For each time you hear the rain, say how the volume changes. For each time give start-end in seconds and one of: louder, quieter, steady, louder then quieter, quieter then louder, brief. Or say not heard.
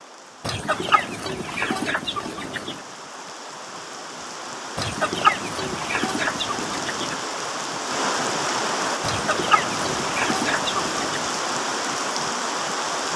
0.0-13.1 louder.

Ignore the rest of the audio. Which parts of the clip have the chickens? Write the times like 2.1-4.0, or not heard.
0.4-2.9, 4.8-7.2, 9.0-11.3.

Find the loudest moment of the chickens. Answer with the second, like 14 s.
5 s.